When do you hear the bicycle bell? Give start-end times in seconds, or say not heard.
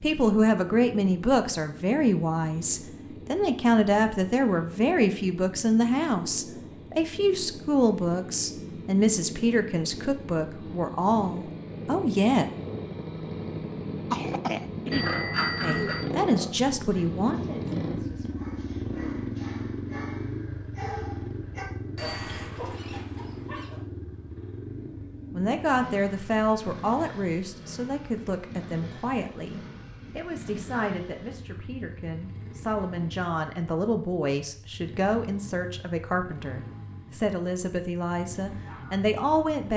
14.9-16.1, 21.9-22.4.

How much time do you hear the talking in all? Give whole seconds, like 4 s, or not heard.
30 s.